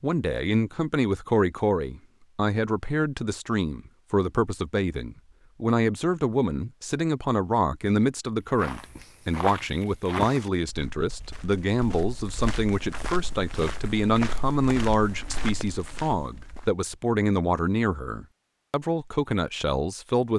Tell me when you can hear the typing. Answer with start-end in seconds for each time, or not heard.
not heard.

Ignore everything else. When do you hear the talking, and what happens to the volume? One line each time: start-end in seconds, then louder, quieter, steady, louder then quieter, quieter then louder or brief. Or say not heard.
0.0-20.3 steady.